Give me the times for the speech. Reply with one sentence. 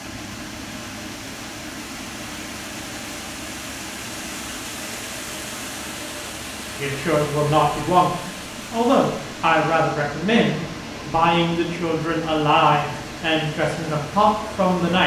You can hear the speech from 6.8 to 15.0 s.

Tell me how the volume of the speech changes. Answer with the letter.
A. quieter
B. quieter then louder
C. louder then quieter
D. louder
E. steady
E.